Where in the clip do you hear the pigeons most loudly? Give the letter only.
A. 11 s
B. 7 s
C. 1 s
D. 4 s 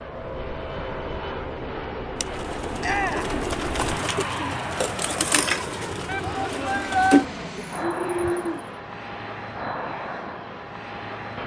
B.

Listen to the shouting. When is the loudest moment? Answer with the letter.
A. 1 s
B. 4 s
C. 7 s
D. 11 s
C.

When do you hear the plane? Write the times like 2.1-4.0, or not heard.
0.0-11.4.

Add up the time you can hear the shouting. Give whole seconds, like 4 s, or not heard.
2 s.